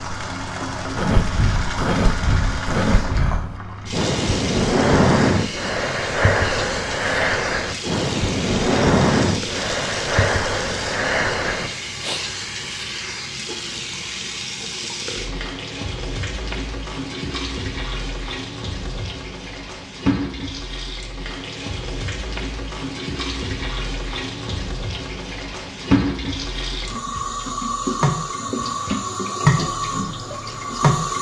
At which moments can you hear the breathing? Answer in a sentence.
You can hear the breathing from 0.9 to 12.2 s.